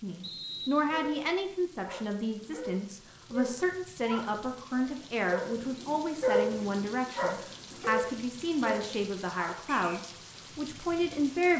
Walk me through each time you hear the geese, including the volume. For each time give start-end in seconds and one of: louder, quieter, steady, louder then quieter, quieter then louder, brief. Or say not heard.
not heard.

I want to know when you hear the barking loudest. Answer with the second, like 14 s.
6 s.